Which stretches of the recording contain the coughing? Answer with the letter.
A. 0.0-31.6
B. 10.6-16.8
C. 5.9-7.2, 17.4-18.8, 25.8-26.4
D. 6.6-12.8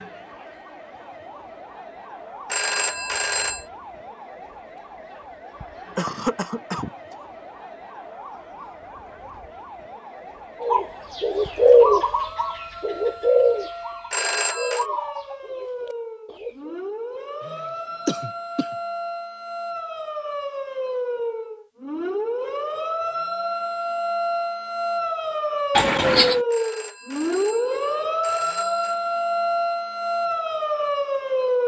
C.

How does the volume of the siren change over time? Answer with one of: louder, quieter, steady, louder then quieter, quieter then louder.
louder.